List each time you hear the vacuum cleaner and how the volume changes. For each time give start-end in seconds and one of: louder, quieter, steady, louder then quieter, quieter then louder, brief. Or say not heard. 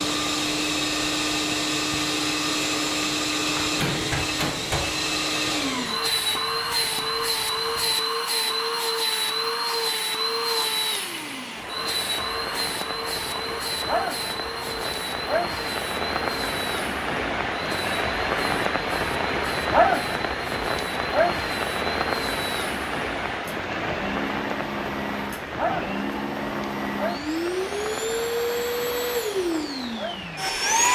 0.0-30.8 quieter then louder.